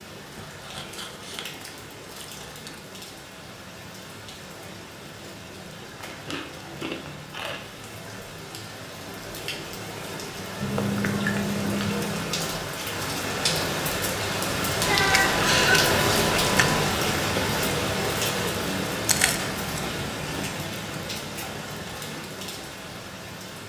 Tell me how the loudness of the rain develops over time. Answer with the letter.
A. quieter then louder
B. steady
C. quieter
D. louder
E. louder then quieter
E.